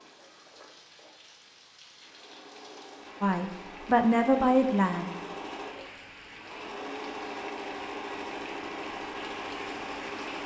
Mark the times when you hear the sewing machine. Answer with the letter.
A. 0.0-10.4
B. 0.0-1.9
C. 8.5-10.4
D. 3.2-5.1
A.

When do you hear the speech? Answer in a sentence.
The speech can be heard from 3.2 to 5.1 s.